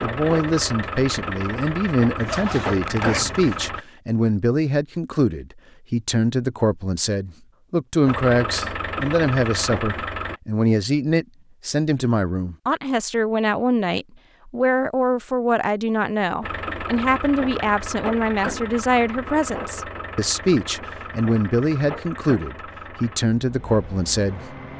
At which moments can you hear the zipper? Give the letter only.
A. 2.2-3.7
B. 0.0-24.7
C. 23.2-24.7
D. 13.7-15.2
A.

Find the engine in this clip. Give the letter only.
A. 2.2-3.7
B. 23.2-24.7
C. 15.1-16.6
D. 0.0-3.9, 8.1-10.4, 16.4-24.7
D.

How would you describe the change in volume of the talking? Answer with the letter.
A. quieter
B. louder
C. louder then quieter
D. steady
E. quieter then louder
D.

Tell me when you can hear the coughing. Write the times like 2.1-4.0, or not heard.
not heard.